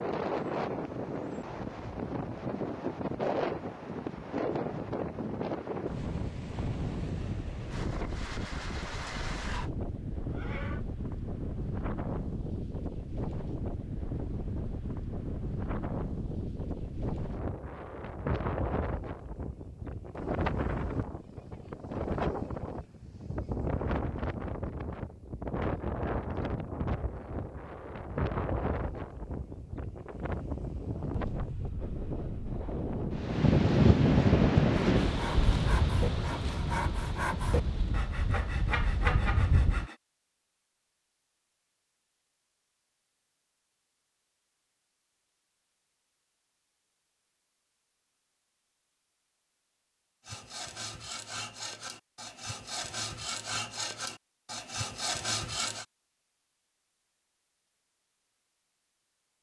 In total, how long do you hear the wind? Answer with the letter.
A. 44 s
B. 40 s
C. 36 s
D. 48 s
B.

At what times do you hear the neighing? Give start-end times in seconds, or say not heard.
10.2-10.8.